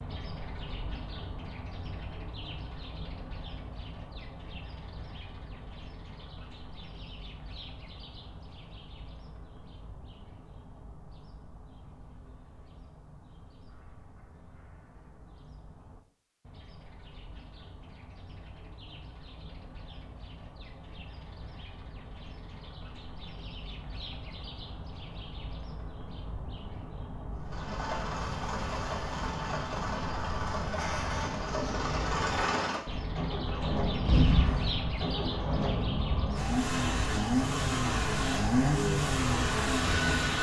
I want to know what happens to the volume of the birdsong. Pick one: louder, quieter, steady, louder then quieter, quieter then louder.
quieter then louder.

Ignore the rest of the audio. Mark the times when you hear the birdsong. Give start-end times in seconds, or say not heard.
0.0-40.3.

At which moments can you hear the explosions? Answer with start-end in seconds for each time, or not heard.
34.0-35.0.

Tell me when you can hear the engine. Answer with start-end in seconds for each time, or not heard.
27.4-40.3.